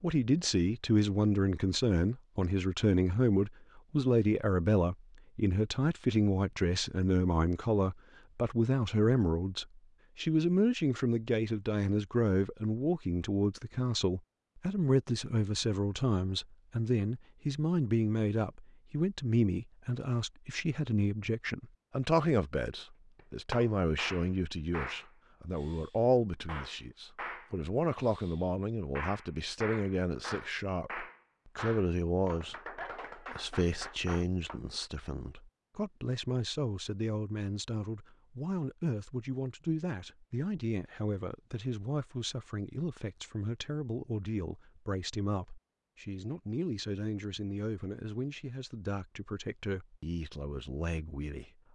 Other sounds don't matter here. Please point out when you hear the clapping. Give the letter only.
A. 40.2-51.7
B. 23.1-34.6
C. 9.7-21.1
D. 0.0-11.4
B.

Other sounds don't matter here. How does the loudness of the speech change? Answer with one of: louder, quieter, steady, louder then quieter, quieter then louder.
quieter.